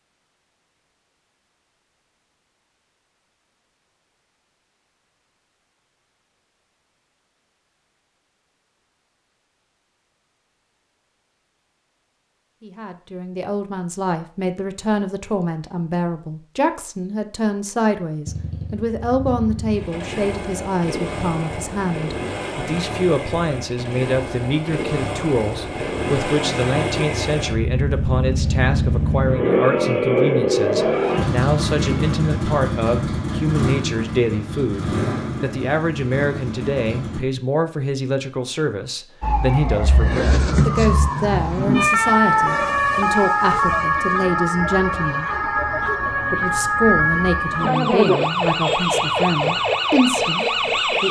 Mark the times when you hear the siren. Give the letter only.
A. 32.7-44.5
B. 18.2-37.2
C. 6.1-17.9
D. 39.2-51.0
D.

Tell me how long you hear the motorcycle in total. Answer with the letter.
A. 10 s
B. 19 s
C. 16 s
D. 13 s
B.